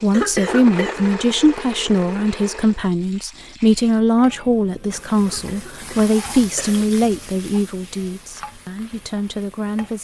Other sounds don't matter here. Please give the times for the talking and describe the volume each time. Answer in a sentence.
You can hear the talking from 0.0 to 9.9 s, getting quieter.